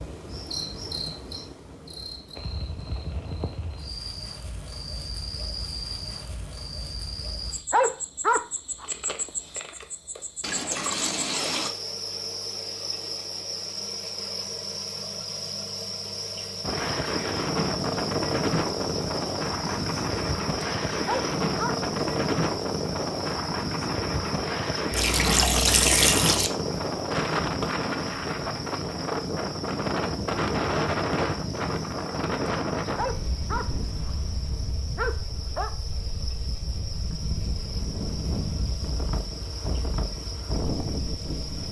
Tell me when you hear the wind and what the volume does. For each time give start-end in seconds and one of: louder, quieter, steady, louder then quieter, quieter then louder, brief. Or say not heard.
16.6-41.6 quieter.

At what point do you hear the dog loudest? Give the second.
8 s.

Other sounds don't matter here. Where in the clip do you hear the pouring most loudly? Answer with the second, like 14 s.
26 s.